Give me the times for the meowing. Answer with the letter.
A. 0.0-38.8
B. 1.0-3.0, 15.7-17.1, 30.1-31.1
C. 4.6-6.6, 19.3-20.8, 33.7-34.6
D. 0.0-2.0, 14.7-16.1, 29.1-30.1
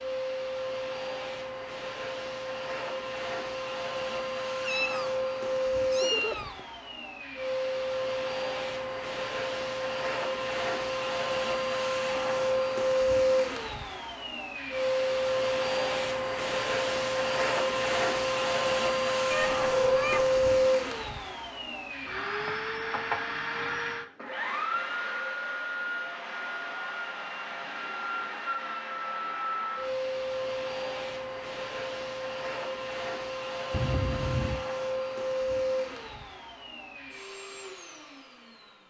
C.